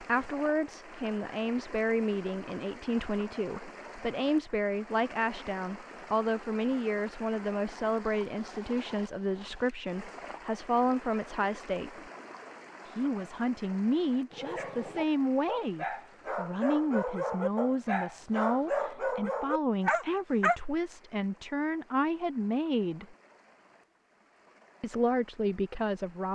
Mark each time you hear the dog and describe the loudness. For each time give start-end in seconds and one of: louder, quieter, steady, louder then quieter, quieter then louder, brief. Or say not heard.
14.3-20.6 louder.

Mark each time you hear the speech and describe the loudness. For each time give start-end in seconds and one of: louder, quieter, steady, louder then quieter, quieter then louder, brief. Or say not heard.
0.0-12.0 steady
12.8-23.1 steady
24.8-26.3 brief.